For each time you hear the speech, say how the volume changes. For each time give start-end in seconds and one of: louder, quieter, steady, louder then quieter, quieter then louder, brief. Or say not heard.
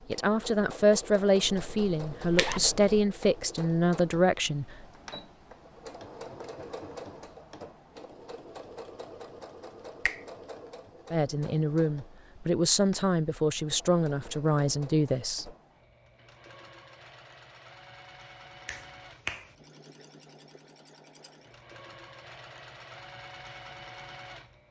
0.1-4.8 steady
11.1-15.5 steady.